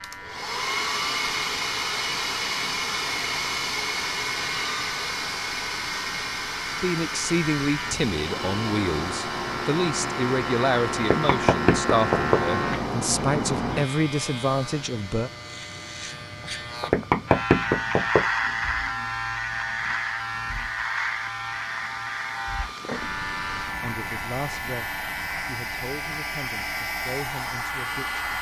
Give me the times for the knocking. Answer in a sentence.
You can hear the knocking from 11.0 to 12.4 s and from 16.8 to 18.2 s.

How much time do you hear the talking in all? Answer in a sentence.
The talking can be heard for 12 seconds in total.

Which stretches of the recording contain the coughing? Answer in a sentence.
The coughing can't be heard in this clip.